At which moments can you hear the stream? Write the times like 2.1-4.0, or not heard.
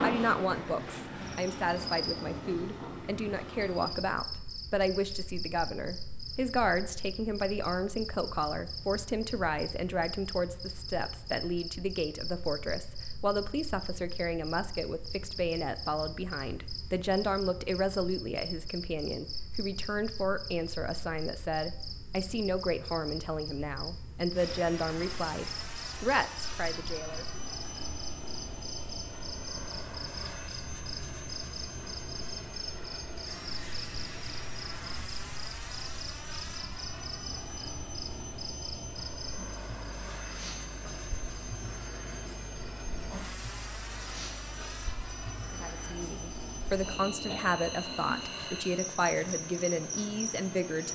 not heard.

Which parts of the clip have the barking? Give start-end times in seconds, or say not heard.
not heard.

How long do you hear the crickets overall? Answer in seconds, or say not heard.
51 s.